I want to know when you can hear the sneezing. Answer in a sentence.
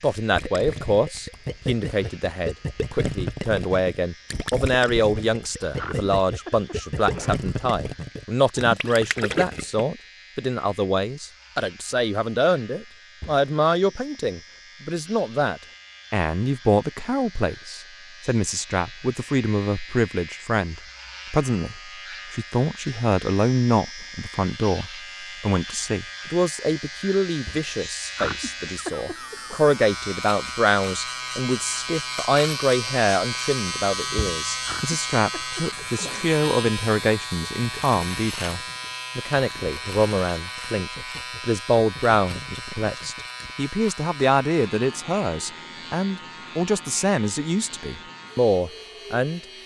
You can hear the sneezing from 5.8 to 7.5 s, from 28.1 to 29.6 s and from 34.6 to 36.4 s.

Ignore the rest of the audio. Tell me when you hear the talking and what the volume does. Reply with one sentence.
You can hear the talking from 0.0 to 49.4 s, at a steady volume.